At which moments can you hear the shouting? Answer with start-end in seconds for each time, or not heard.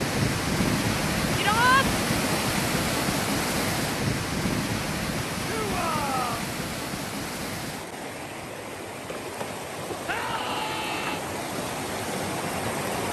1.4-1.9, 5.5-6.5, 10.1-11.2.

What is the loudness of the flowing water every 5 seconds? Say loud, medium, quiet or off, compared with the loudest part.
loud, medium, medium.